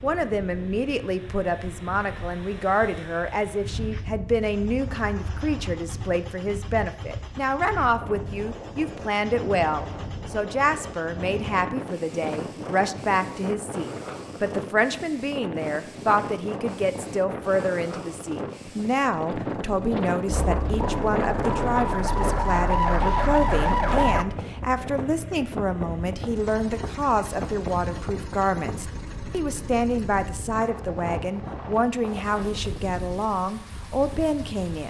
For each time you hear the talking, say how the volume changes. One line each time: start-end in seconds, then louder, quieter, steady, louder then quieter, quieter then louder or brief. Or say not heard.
0.0-34.8 steady.